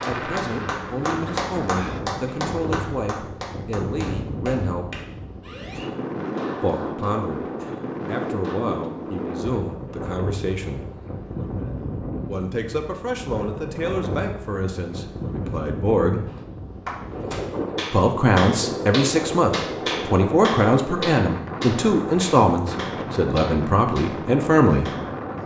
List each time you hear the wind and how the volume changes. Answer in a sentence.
The wind can be heard from 0.0 to 25.4 s, at a steady volume.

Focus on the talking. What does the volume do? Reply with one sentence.
The volume of the talking goes up.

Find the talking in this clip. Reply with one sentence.
You can hear the talking from 0.1 to 5.0 s, from 6.6 to 10.8 s, from 12.2 to 16.2 s and from 17.9 to 24.9 s.